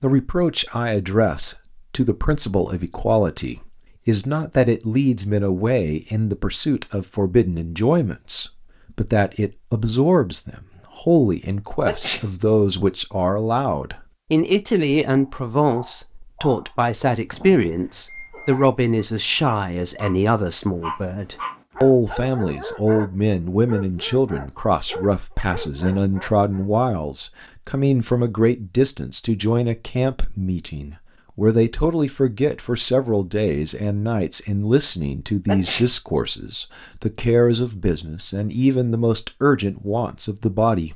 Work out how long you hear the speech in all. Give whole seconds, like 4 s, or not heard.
41 s.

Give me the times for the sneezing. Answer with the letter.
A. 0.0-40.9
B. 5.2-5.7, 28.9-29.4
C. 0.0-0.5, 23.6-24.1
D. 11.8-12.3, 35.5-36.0
D.